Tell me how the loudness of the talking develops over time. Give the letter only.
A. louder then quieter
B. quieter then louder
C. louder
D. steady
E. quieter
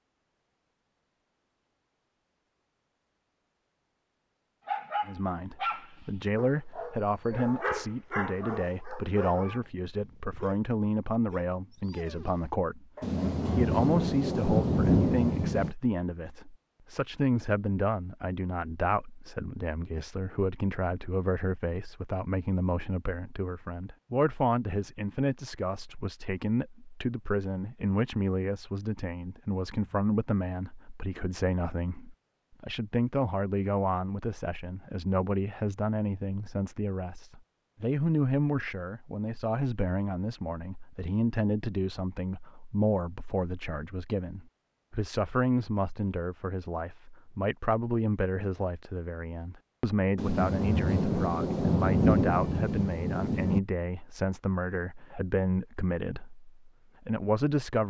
D.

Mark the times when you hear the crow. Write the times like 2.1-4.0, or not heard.
not heard.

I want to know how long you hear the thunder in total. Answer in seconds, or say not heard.
6 s.